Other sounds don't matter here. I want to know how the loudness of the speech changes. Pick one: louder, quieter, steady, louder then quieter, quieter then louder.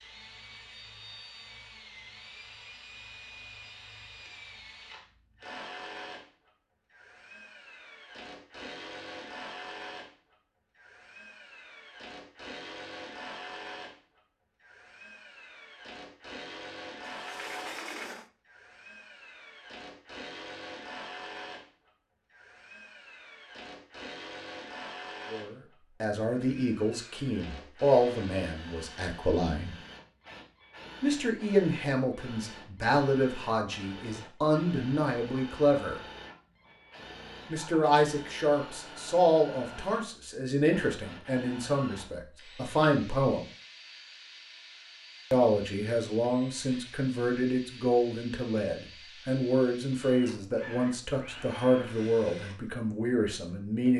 steady.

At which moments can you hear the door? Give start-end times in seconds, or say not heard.
17.1-18.3.